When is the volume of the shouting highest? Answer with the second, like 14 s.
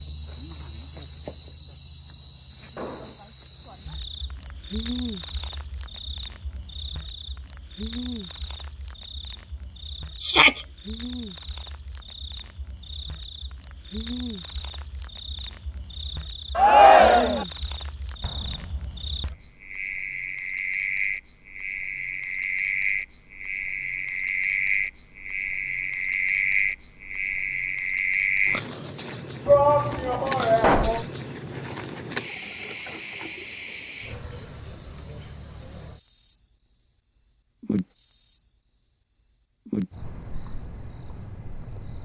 17 s.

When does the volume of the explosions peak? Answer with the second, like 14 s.
31 s.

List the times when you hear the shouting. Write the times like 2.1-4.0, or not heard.
10.2-10.7, 16.6-17.4, 29.4-31.1.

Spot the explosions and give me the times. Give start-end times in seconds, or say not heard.
2.8-3.2, 18.2-19.4, 30.6-31.1.